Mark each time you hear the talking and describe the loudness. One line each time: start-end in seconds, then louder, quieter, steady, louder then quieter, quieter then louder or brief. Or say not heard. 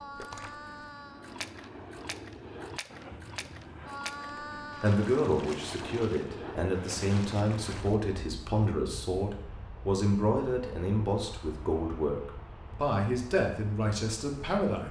4.3-14.8 steady.